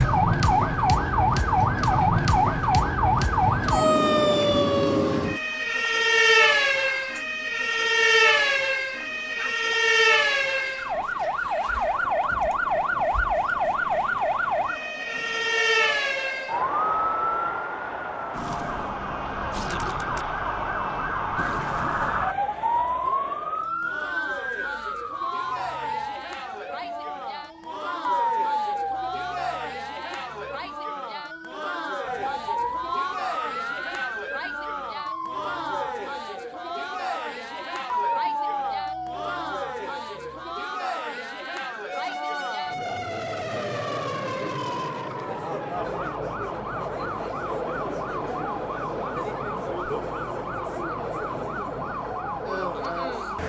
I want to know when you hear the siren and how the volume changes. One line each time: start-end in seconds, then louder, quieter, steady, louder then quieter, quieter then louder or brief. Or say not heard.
0.0-53.4 quieter.